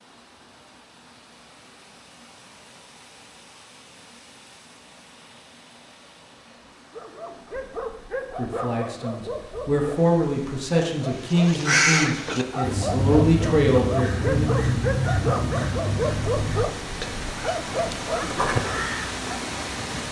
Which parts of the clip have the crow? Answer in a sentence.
You can hear the crow from 11.1 to 19.1 s.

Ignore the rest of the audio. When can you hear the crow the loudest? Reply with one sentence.
The loudest moment of the crow is at 12 seconds.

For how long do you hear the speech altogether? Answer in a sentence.
The speech can be heard for 6 seconds in total.